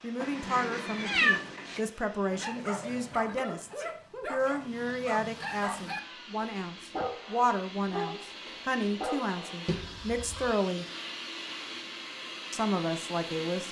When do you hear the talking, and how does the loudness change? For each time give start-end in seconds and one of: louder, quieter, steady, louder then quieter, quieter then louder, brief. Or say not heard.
0.0-10.8 steady
12.5-13.6 brief.